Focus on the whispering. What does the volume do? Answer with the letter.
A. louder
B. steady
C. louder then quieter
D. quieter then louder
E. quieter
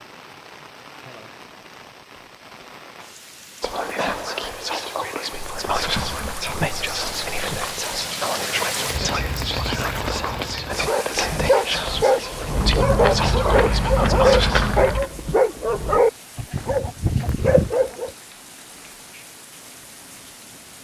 B.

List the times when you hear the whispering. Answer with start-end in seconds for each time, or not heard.
3.6-14.8.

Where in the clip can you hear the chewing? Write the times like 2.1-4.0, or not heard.
5.3-7.6, 12.6-15.1.